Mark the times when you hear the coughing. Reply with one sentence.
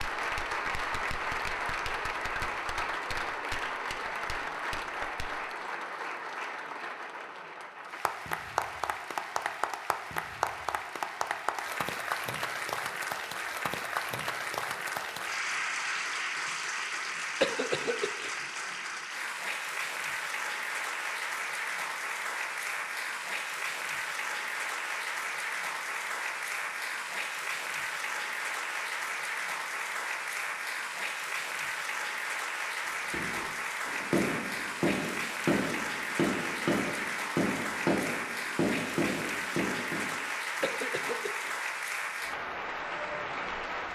The coughing can be heard from 17.4 to 18.4 s and from 40.6 to 41.5 s.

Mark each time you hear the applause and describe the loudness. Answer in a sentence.
You can hear the applause from 0.0 to 43.9 s, at a steady volume.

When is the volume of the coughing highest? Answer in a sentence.
The volume of the coughing peaks at 18 seconds.